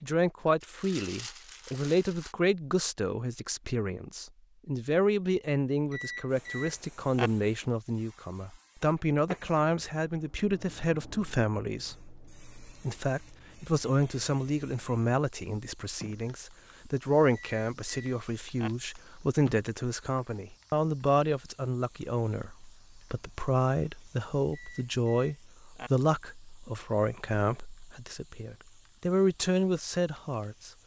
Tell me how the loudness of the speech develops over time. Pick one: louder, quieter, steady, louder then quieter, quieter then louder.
steady.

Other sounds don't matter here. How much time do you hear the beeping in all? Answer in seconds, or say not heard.
4 s.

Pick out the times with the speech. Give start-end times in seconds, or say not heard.
0.0-30.7.